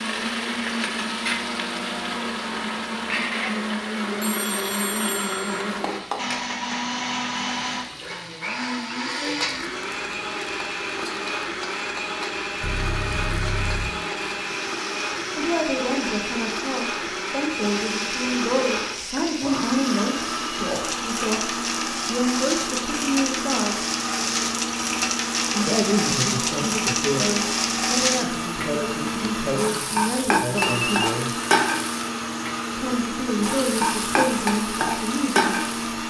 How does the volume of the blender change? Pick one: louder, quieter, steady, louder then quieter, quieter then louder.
steady.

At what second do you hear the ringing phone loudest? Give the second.
31 s.